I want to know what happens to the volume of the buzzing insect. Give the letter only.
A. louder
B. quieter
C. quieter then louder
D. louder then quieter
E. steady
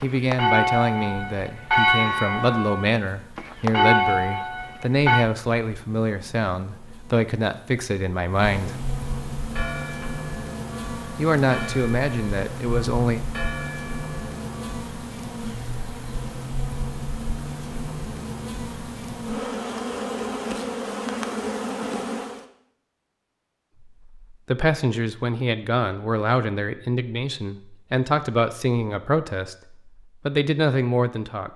A.